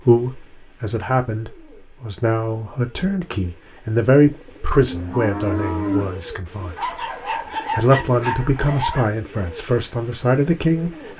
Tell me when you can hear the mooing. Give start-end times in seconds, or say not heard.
4.8-6.2.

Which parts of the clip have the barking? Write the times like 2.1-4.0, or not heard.
6.8-9.1.